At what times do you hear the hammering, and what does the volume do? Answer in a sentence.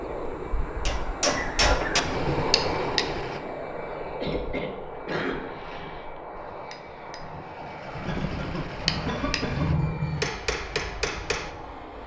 The hammering can be heard briefly from 0.8 to 3.4 s; and from 6.3 to 11.5 s, getting louder.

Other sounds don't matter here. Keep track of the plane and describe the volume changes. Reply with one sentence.
The volume of the plane goes down.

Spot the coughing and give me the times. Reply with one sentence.
The coughing can be heard from 1.2 to 2.1 s, from 4.2 to 6.2 s and from 8.1 to 9.7 s.